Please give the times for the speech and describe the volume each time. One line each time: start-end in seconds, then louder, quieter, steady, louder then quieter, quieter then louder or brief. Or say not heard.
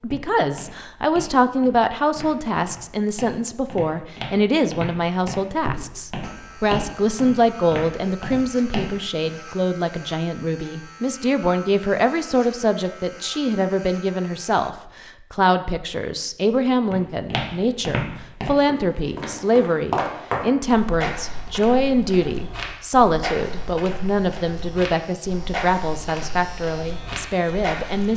0.0-28.1 steady.